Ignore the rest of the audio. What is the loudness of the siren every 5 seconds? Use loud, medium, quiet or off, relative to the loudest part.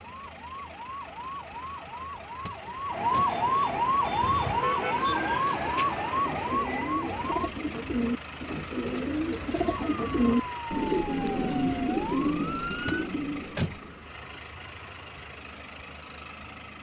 loud, loud, medium, off.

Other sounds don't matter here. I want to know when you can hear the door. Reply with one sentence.
The door can be heard from 2.4 to 3.2 s, from 8.8 to 9.7 s and from 12.8 to 13.8 s.